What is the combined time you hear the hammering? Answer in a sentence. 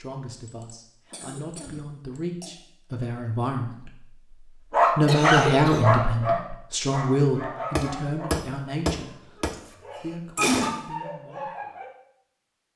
The hammering can be heard for 2 seconds in total.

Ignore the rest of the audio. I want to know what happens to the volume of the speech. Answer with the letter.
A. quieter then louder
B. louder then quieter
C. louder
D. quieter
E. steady
B.